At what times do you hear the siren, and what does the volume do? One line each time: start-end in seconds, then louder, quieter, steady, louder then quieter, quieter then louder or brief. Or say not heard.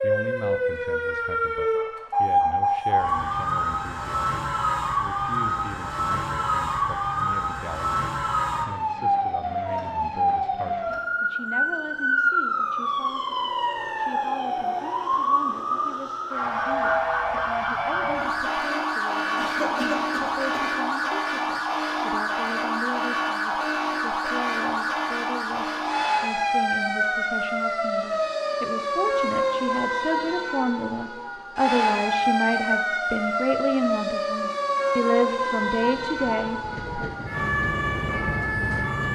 0.0-39.1 steady.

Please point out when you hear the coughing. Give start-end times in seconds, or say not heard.
19.4-20.6.